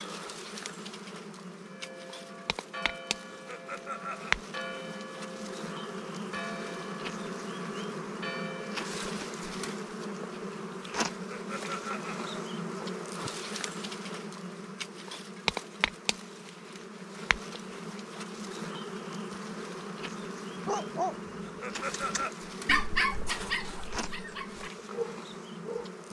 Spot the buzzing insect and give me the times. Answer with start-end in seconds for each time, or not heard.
0.0-26.0.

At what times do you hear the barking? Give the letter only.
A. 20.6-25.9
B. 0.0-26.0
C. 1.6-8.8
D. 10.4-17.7
A.